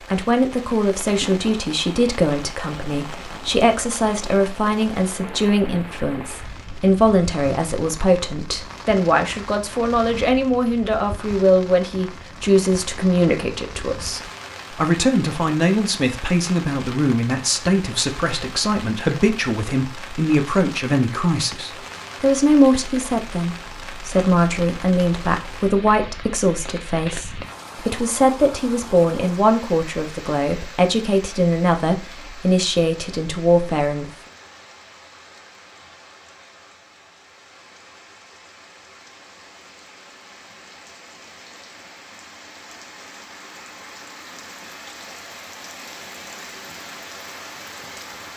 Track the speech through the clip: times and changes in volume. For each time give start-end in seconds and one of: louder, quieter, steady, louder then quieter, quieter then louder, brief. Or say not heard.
0.1-34.1 steady.